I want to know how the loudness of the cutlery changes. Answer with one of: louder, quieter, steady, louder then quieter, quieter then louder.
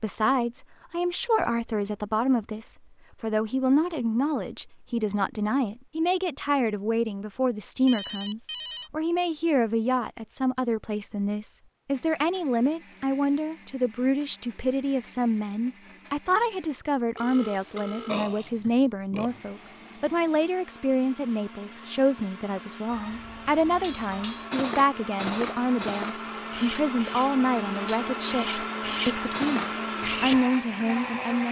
quieter then louder.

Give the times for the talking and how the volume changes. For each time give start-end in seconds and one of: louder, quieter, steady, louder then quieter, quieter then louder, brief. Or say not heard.
0.0-31.4 steady.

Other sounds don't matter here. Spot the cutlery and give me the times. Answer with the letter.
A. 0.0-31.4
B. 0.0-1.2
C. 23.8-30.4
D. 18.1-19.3
C.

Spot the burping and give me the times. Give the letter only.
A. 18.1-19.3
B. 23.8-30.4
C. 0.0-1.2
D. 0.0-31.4
A.